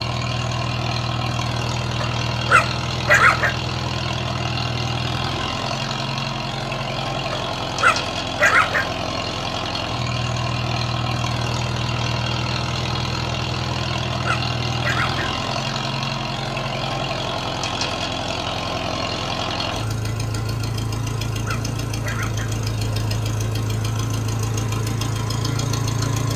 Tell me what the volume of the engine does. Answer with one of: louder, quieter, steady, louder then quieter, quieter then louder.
steady.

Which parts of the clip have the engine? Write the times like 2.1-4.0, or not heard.
0.0-26.3.